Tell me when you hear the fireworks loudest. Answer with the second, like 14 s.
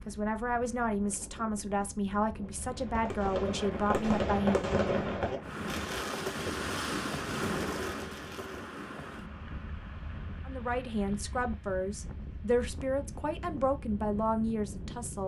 5 s.